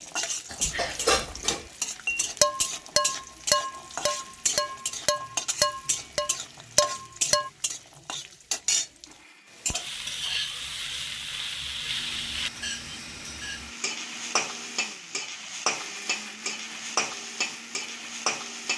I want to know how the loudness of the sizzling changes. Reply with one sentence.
The loudness of the sizzling stays about the same.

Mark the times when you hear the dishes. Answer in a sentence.
The dishes can be heard from 0.5 to 7.5 s.